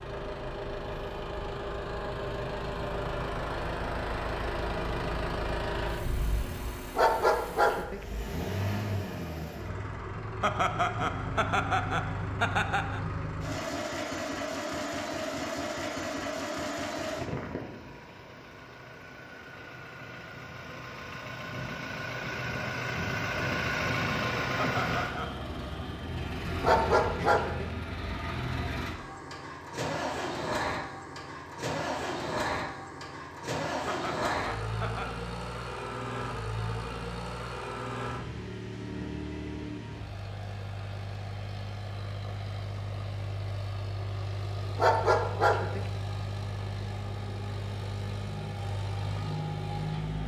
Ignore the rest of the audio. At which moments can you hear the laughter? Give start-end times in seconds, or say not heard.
10.4-13.0, 24.6-25.4, 33.9-35.1.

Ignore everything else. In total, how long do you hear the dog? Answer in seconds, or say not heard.
3 s.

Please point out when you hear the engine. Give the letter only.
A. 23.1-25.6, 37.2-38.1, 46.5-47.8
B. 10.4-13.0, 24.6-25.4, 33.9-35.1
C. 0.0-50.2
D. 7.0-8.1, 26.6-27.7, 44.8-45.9
C.